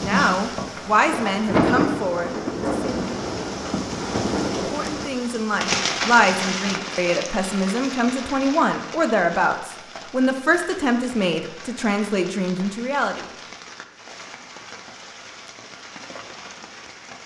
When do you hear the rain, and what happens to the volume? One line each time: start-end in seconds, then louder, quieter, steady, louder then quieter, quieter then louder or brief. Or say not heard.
0.0-17.2 quieter.